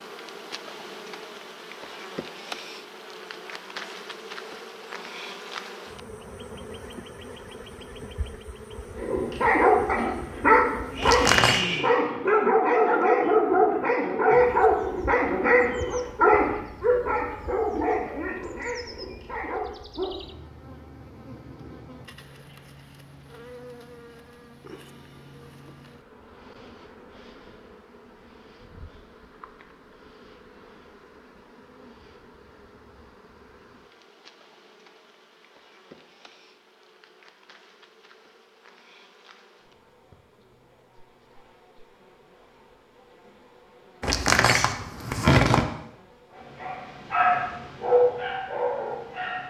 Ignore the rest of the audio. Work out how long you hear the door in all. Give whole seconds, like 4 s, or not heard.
2 s.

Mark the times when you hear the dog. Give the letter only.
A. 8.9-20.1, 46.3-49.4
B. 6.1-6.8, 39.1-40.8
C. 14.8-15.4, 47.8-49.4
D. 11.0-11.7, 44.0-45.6
A.